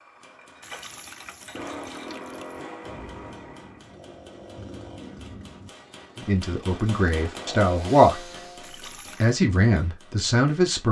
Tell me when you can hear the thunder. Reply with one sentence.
You can hear the thunder from 2.8 to 5.7 s.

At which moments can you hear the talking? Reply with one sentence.
You can hear the talking from 6.2 to 8.3 s and from 9.2 to 10.8 s.